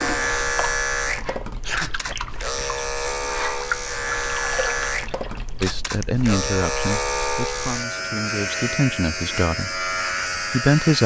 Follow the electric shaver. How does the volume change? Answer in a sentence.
The volume of the electric shaver stays about the same.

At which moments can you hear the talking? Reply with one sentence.
You can hear the talking from 5.6 to 11.0 s.